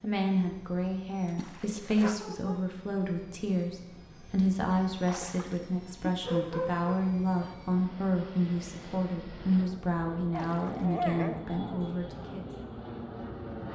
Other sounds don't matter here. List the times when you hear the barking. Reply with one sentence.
You can hear the barking from 2.0 to 2.6 s, from 6.0 to 7.5 s and from 10.3 to 11.9 s.